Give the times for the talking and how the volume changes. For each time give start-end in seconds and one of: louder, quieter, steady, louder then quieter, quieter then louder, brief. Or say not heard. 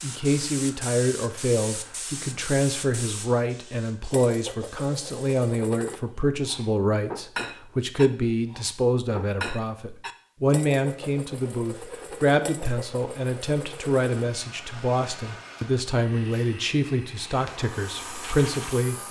0.0-19.0 steady.